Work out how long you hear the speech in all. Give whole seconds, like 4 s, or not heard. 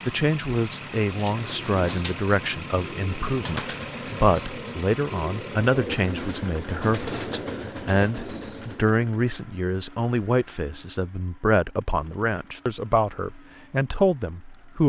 15 s.